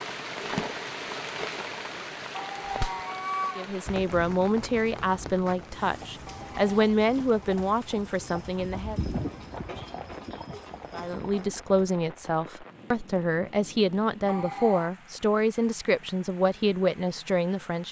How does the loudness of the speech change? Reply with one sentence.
The volume of the speech stays about the same.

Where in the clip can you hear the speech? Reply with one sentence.
You can hear the speech from 3.5 to 9.0 s and from 10.9 to 17.8 s.